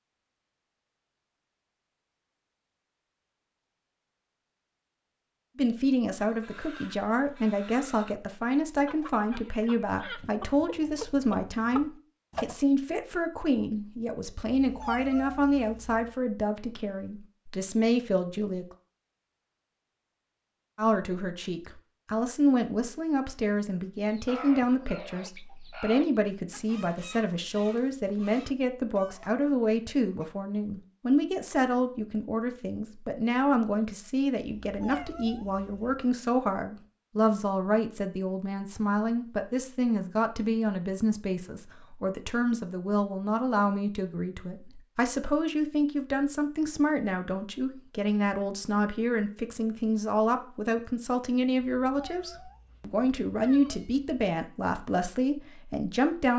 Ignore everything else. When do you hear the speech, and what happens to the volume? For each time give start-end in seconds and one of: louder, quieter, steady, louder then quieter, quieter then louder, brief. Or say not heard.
5.5-18.6 steady
20.8-56.3 steady.